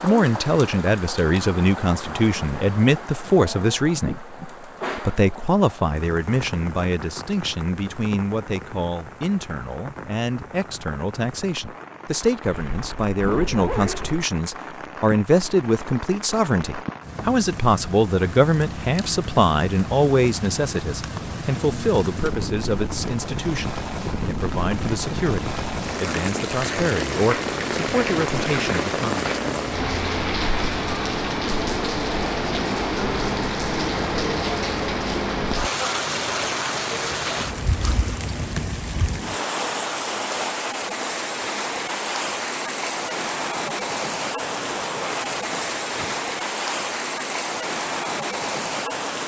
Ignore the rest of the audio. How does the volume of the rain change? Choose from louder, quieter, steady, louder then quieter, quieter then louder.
louder.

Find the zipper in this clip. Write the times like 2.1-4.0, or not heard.
12.4-14.2, 44.4-46.2.